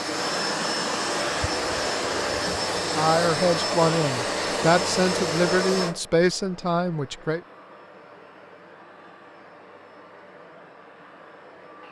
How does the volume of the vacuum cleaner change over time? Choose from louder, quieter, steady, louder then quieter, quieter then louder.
quieter.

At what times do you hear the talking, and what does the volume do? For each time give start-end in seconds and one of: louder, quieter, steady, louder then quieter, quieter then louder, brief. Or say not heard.
2.8-7.4 steady.